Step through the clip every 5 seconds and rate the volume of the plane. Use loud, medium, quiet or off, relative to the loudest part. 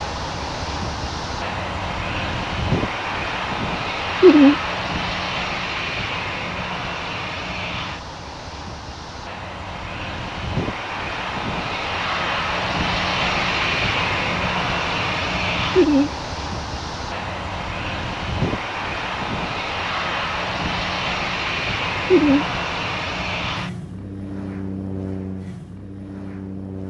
loud, medium, loud, loud, loud, medium.